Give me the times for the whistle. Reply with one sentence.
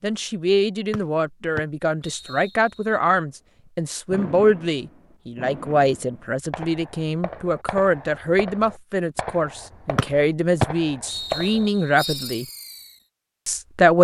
The whistle can be heard from 0.9 to 3.0 s and from 9.9 to 12.3 s.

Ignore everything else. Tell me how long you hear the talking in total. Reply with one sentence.
The talking can be heard for 13 seconds in total.